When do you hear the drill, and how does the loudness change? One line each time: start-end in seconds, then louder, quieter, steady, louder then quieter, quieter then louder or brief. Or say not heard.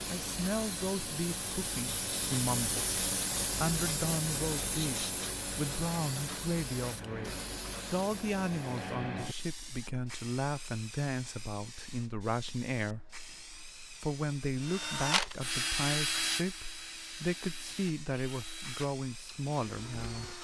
14.6-20.3 quieter.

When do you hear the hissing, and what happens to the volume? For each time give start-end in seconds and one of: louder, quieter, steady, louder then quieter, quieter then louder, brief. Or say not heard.
0.0-20.3 quieter.